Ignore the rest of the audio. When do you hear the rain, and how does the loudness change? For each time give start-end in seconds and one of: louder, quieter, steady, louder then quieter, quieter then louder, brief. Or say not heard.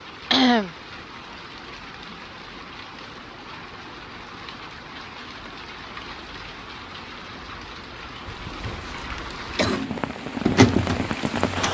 0.0-11.6 louder.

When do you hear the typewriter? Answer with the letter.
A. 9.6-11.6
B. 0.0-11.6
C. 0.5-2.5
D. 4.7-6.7
A.